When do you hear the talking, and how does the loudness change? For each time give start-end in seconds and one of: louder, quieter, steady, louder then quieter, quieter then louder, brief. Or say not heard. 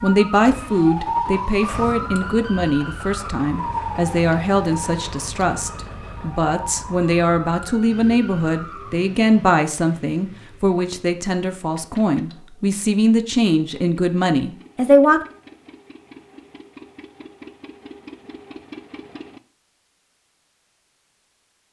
0.0-15.2 steady.